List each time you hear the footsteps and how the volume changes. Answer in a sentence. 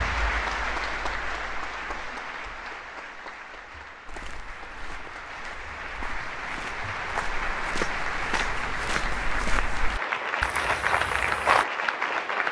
You can hear the footsteps from 4.0 to 11.7 s, getting louder.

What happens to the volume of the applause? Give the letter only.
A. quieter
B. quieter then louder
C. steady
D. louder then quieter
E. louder
B.